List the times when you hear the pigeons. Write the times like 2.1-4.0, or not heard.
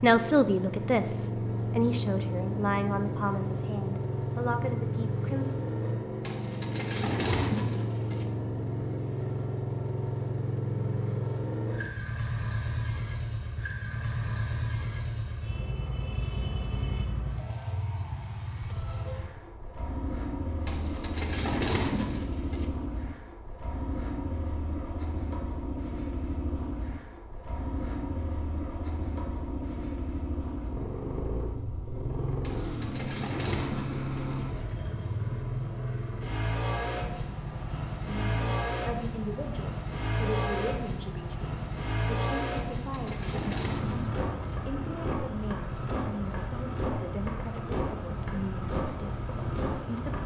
6.2-8.2, 20.6-22.6, 32.4-34.5, 42.5-44.5.